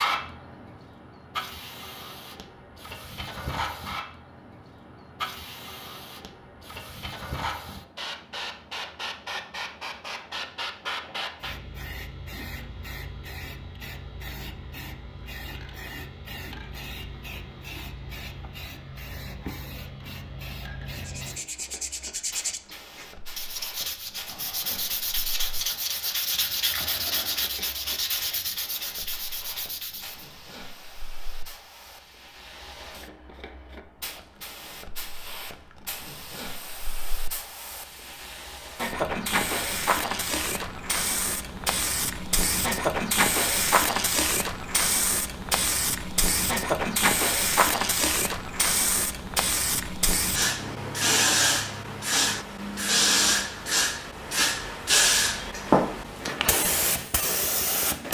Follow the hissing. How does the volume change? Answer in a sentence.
The loudness of the hissing goes down, then up.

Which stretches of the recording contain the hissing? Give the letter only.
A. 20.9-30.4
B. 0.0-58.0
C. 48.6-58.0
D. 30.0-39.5
B.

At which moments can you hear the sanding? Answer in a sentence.
You can hear the sanding from 20.9 to 30.4 s.